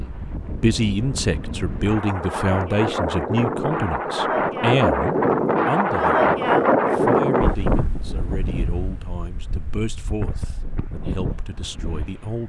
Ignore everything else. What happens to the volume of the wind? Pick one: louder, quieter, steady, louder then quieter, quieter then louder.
louder then quieter.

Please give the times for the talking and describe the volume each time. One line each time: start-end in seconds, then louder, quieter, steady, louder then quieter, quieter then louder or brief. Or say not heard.
0.0-12.4 quieter.